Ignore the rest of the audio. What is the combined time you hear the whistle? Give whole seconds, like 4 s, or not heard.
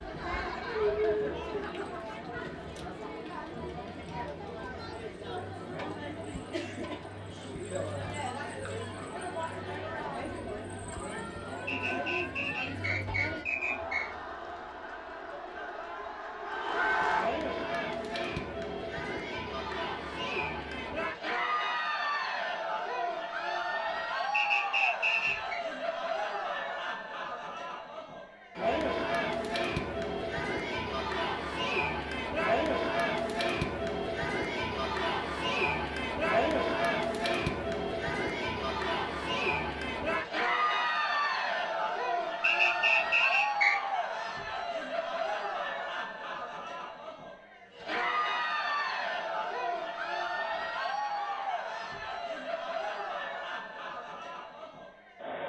5 s.